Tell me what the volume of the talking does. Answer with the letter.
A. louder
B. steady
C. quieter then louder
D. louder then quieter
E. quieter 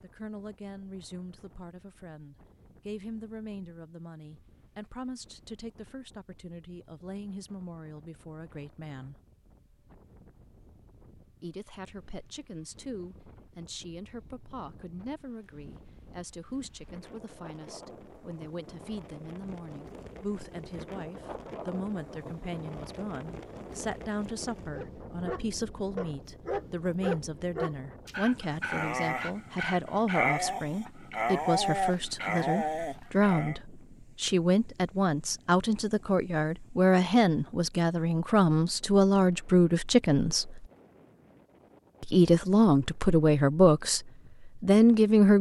A.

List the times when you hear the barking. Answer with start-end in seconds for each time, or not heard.
24.7-33.5.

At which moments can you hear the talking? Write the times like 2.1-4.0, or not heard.
0.0-9.2, 11.4-40.6, 42.0-45.3.